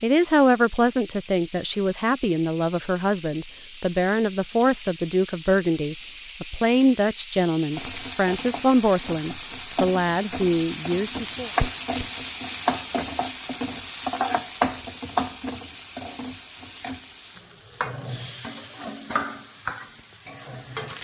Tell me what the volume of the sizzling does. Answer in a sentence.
The volume of the sizzling goes up, then down.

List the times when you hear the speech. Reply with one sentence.
You can hear the speech from 0.0 to 11.5 s.